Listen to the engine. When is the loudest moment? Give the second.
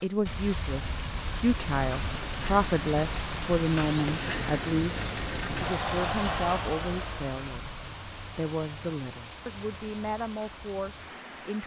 6 s.